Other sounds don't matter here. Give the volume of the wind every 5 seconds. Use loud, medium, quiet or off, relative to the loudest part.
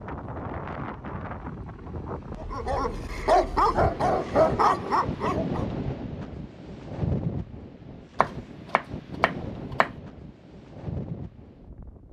loud, loud, medium.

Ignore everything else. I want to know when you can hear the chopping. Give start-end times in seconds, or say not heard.
8.2-9.9.